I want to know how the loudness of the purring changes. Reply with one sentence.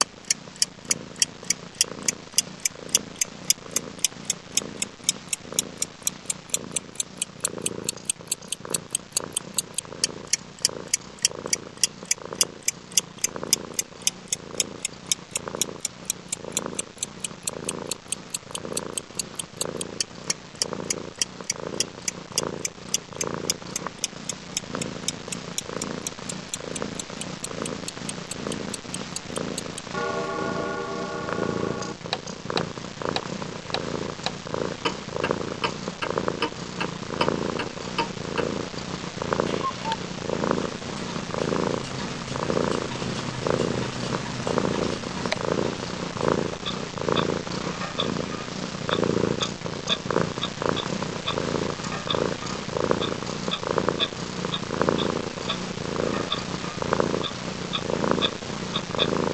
The loudness of the purring goes up.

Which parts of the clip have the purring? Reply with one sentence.
The purring can be heard from 0.0 to 59.2 s.